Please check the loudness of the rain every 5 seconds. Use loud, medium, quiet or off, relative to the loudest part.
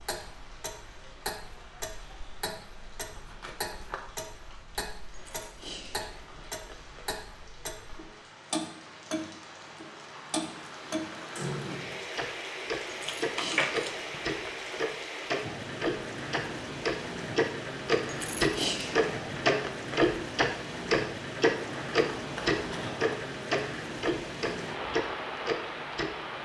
quiet, quiet, loud, loud, loud, loud.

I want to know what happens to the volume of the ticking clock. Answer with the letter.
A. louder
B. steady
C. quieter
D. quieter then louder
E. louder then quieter
A.